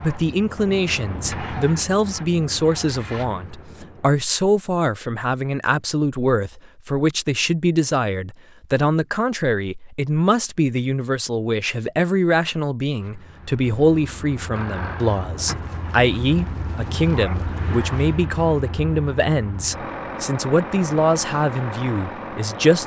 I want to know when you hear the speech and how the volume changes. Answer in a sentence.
The speech can be heard from 0.0 to 22.8 s, at a steady volume.